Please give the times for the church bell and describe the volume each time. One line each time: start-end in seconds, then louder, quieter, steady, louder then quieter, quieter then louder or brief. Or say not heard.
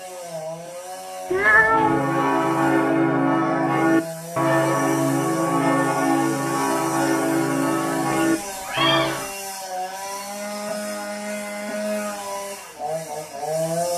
1.7-9.3 steady.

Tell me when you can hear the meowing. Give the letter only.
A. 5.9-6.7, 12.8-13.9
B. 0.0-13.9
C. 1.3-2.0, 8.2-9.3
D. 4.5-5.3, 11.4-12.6
C.